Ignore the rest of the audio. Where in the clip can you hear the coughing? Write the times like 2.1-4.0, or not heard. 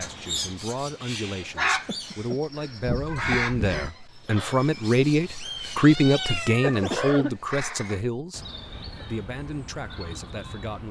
1.9-3.5, 6.8-7.3.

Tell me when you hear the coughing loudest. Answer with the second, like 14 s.
7 s.